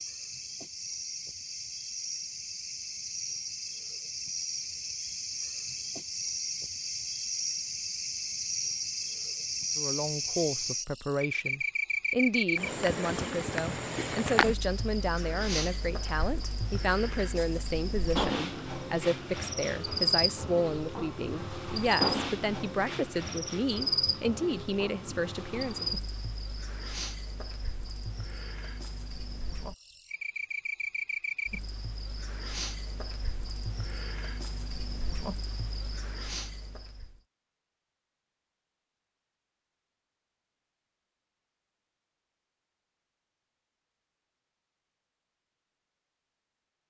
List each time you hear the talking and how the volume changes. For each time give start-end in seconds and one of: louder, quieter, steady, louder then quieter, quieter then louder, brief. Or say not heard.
9.8-25.9 steady.